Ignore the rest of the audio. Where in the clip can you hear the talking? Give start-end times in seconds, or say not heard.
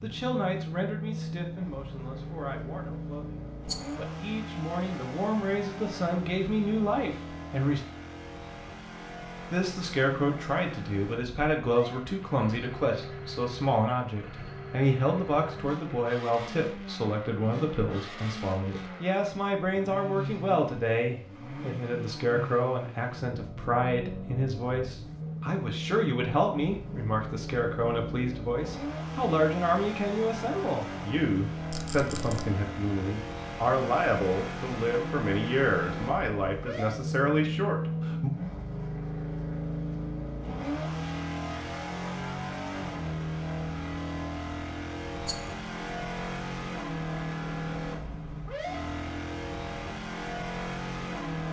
0.0-7.8, 9.5-38.3.